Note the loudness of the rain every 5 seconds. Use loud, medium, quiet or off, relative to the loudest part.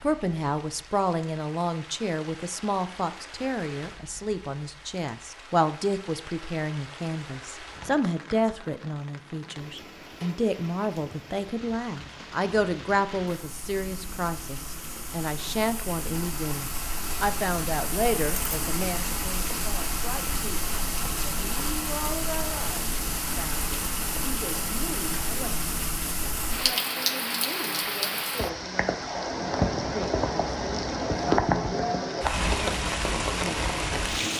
quiet, quiet, quiet, medium, medium, loud, loud.